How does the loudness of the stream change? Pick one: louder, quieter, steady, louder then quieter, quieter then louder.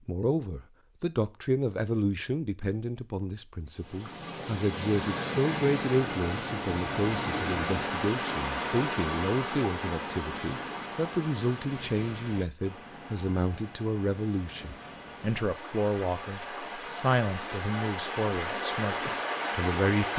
quieter then louder.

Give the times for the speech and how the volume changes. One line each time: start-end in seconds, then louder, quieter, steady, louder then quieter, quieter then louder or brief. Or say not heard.
0.1-20.1 steady.